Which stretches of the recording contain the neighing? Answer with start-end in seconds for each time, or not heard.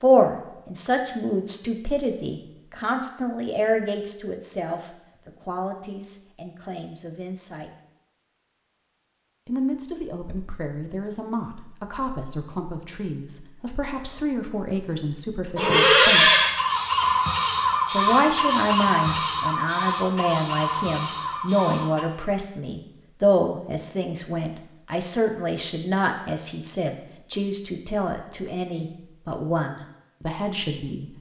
15.6-16.5.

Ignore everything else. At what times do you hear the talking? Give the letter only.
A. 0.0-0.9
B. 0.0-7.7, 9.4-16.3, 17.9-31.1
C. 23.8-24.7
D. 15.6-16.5
B.